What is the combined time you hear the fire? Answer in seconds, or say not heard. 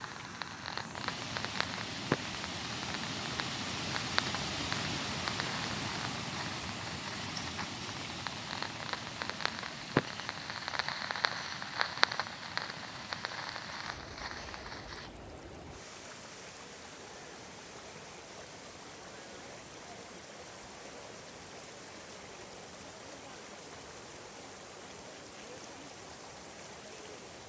15 s.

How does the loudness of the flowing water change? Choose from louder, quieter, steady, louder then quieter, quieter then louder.
quieter.